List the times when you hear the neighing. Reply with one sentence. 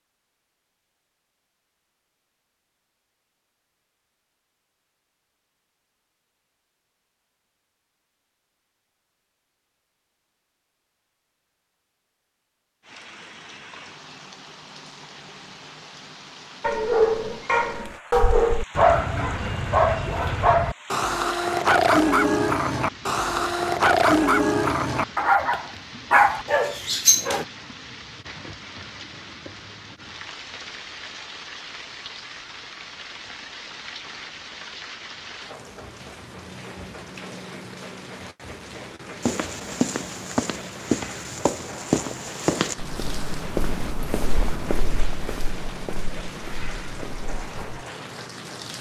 The neighing can't be heard in this clip.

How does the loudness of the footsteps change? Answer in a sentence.
The loudness of the footsteps goes down.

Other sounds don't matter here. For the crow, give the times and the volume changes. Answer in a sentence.
You can't hear the crow here.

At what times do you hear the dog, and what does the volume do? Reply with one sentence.
The dog can be heard from 16.6 to 27.4 s, at a steady volume.